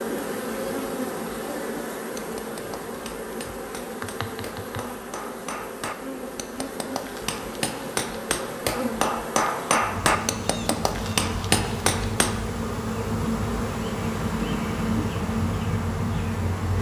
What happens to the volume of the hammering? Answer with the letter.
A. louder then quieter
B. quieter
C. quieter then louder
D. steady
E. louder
E.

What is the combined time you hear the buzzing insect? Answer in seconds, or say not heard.
17 s.